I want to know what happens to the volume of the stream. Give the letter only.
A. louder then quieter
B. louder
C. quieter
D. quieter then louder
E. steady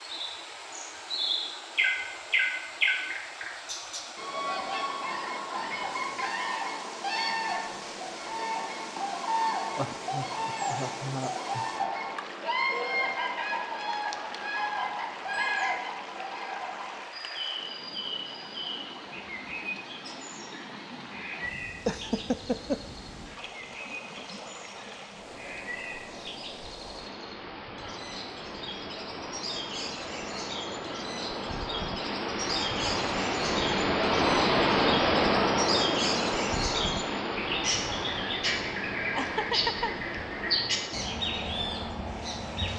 B.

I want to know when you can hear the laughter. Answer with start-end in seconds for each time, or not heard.
9.8-11.7, 21.9-22.8, 39.1-39.9.